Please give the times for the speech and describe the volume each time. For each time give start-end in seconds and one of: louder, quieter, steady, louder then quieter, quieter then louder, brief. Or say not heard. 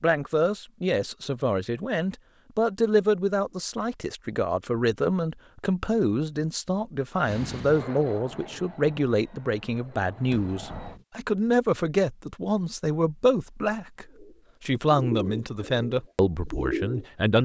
0.0-17.4 steady.